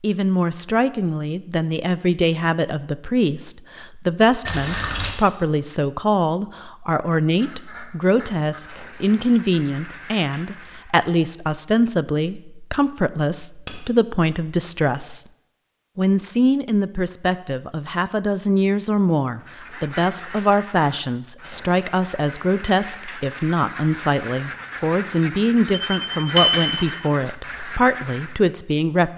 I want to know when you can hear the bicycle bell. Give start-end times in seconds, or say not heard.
4.5-5.2, 13.7-14.3, 25.9-26.9.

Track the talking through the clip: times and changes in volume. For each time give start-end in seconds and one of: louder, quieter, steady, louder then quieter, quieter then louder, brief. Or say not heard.
0.0-15.2 steady
15.9-29.1 steady.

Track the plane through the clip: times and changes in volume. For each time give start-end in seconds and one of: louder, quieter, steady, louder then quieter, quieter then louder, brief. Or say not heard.
not heard.